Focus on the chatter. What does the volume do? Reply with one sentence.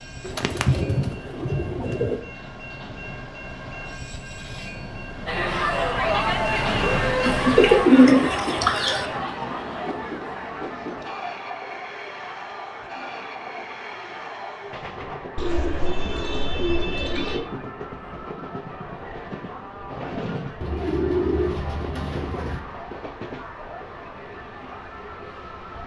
The loudness of the chatter goes down.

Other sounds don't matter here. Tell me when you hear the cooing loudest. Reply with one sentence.
The loudest moment of the cooing is at 8 seconds.